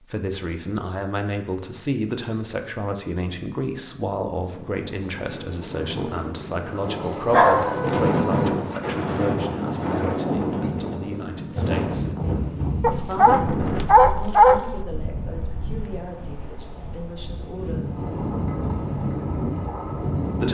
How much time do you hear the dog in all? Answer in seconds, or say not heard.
3 s.